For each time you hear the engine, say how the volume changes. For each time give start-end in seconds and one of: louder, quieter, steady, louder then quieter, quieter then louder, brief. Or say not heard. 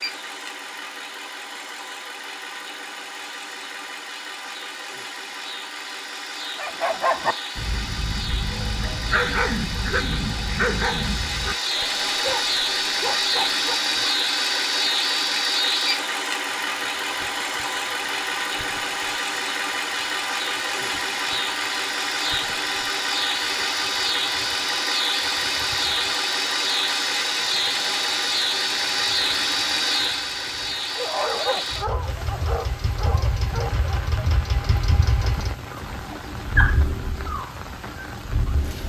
0.0-38.8 louder then quieter.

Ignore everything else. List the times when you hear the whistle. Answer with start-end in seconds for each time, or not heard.
not heard.